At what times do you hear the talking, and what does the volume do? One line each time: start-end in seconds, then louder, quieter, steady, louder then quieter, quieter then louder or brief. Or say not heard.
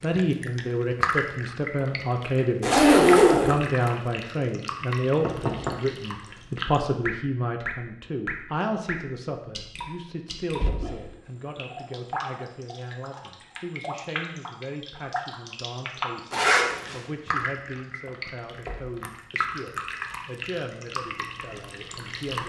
0.0-22.4 quieter.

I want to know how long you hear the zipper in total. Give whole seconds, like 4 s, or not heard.
2 s.